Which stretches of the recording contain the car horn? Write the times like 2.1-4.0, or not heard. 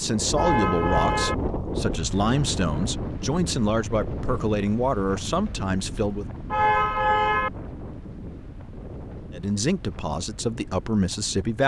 0.3-1.4, 6.5-7.5.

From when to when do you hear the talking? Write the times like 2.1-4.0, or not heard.
0.0-6.2, 9.3-11.6.